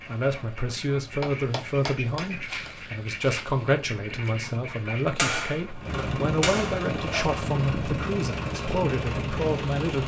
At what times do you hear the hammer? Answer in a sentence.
The hammer can be heard from 1.2 to 2.7 s and from 5.2 to 7.3 s.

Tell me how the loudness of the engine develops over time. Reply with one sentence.
The volume of the engine goes up.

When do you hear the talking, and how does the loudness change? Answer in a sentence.
You can hear the talking from 0.1 to 10.0 s, at a steady volume.